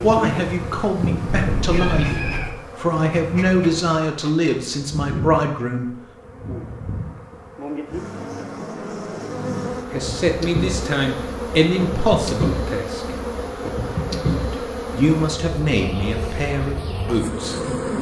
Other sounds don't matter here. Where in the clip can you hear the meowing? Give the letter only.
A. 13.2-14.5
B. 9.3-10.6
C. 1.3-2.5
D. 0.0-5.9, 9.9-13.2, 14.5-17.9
C.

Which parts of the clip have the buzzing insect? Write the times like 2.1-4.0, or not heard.
0.0-17.9.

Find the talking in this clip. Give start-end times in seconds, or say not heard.
0.0-5.9, 9.9-13.2, 14.5-17.9.